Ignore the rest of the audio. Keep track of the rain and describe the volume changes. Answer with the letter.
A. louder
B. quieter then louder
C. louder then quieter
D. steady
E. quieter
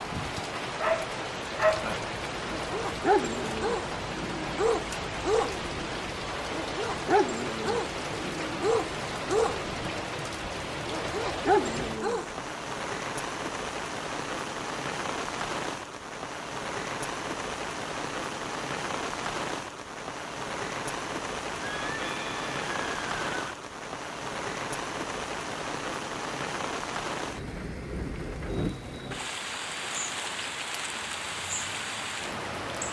D.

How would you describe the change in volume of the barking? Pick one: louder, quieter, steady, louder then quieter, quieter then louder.
steady.